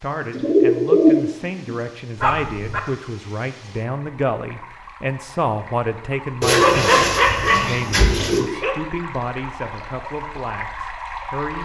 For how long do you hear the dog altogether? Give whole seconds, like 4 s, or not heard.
3 s.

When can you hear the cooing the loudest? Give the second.
1 s.